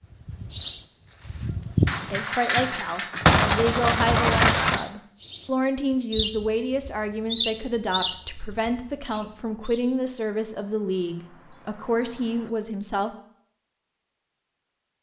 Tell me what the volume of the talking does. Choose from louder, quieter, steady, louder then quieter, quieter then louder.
steady.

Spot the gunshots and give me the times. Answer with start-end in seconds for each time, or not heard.
1.9-4.8.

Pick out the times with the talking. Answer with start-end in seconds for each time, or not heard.
2.0-13.2.